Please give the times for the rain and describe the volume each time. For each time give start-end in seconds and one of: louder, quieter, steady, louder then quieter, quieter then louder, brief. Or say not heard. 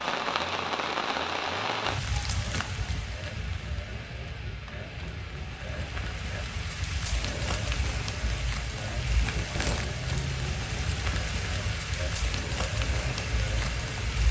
0.0-14.2 quieter then louder.